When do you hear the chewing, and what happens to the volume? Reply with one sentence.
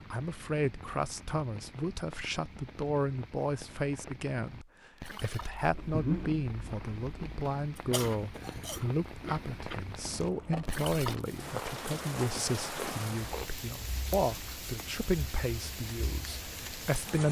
The chewing can be heard from 5.4 to 13.7 s, getting quieter.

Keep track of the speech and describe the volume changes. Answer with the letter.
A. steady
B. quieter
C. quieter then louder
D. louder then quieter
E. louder
A.